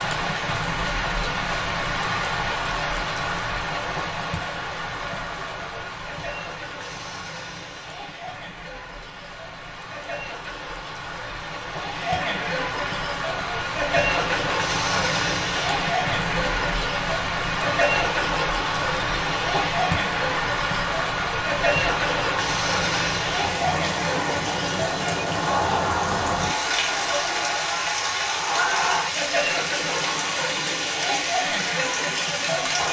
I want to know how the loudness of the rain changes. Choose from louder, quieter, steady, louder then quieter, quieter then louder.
quieter then louder.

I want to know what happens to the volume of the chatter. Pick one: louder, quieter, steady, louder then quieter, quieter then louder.
louder.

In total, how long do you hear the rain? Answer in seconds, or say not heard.
33 s.